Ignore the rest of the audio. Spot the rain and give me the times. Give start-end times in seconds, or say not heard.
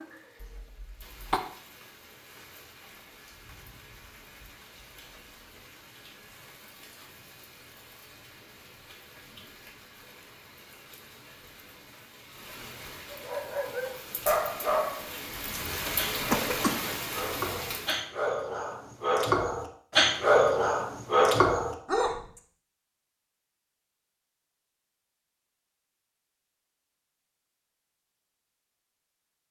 0.0-18.0.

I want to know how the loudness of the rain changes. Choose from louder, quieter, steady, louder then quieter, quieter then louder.
louder.